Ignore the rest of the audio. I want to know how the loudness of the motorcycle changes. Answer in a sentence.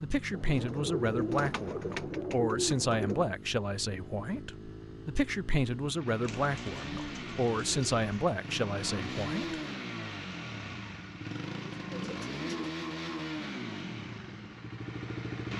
The volume of the motorcycle goes up.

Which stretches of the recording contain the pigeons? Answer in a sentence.
You can hear the pigeons from 0.3 to 3.3 s, from 6.2 to 8.1 s and from 11.8 to 12.7 s.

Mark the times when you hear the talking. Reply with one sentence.
You can hear the talking from 0.0 to 9.6 s.